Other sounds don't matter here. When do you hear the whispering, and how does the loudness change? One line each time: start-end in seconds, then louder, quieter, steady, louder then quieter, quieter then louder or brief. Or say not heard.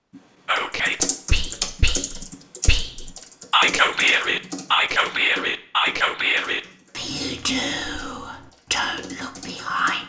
0.5-10.0 louder then quieter.